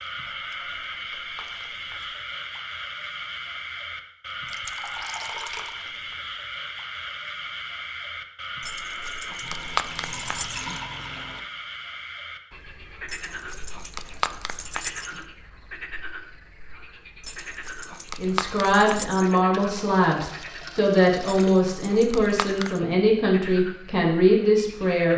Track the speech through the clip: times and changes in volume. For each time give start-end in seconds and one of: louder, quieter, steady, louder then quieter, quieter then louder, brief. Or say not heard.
18.1-25.1 steady.